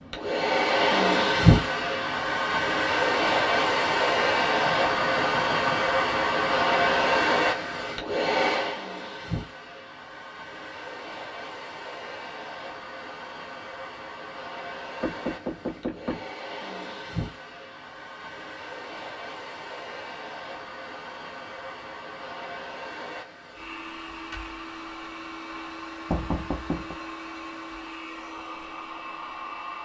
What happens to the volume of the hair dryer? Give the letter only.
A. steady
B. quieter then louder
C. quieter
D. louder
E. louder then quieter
C.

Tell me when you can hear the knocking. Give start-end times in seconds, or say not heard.
4.7-5.9, 15.0-16.3, 26.1-26.9.